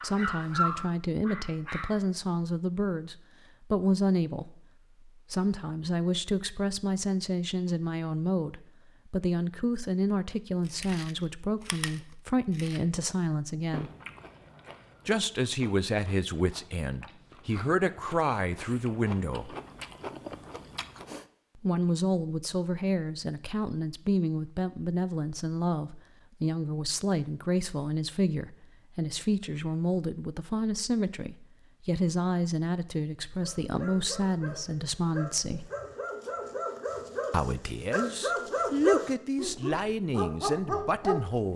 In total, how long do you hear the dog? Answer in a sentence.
You can hear the dog for 10 seconds altogether.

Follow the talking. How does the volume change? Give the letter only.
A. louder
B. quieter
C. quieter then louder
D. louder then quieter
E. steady
E.